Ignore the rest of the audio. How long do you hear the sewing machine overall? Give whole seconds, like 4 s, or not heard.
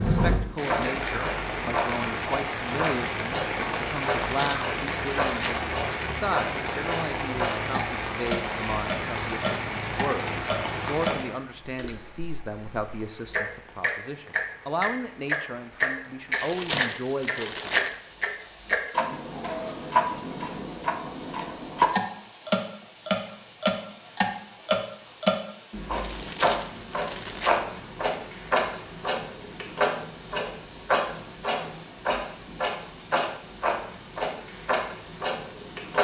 not heard.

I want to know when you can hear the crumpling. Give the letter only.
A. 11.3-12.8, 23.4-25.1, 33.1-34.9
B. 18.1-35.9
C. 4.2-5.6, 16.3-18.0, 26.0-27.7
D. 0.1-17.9
C.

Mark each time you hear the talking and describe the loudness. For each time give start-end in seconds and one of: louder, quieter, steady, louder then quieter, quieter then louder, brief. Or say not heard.
0.1-17.9 steady.